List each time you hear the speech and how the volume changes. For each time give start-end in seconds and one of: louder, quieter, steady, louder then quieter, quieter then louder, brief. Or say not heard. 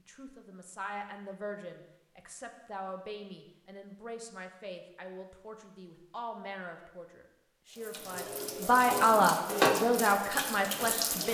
0.1-11.3 louder.